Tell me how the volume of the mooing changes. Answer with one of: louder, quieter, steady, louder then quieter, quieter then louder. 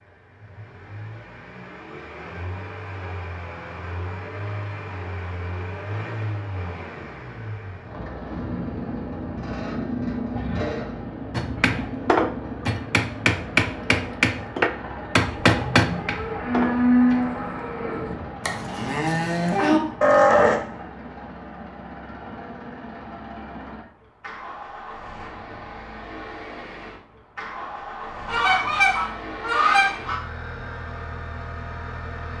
quieter then louder.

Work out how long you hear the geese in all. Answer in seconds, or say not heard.
2 s.